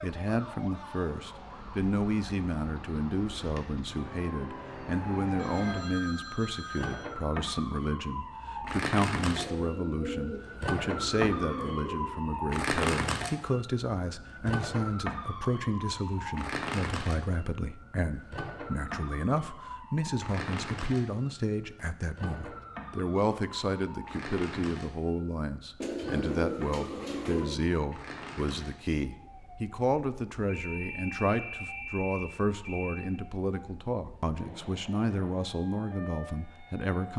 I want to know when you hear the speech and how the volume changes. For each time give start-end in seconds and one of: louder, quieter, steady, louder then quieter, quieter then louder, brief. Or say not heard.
0.0-37.1 steady.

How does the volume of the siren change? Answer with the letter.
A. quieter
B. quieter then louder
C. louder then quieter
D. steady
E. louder
C.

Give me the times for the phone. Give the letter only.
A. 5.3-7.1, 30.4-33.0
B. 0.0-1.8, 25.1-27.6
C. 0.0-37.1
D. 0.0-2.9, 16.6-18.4
A.